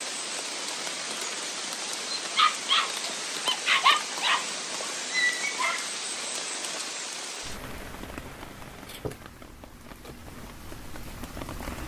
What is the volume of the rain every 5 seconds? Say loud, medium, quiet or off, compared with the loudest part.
loud, loud, medium.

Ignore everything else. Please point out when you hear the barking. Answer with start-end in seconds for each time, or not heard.
2.3-5.8.